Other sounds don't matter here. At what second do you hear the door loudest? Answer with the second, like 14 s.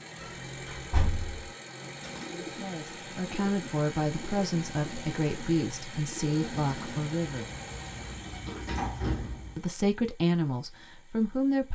9 s.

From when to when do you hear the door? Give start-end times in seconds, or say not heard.
0.2-1.5, 7.2-9.6.